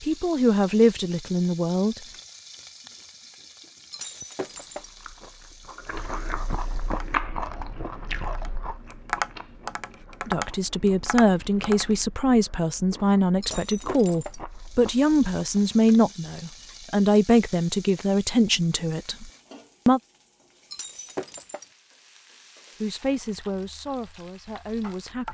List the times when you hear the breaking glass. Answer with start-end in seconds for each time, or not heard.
3.9-4.9, 13.4-14.4, 20.7-21.6.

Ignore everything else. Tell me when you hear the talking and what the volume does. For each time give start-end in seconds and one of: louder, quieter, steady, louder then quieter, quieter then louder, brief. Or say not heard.
0.0-2.0 brief
10.2-20.0 steady
22.8-25.3 brief.